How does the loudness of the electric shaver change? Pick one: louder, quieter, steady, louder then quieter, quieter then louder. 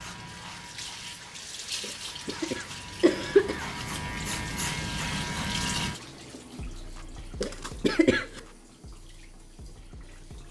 louder.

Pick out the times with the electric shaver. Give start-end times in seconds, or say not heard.
0.0-6.0.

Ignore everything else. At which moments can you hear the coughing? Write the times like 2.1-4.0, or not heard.
1.8-3.6, 7.4-8.4.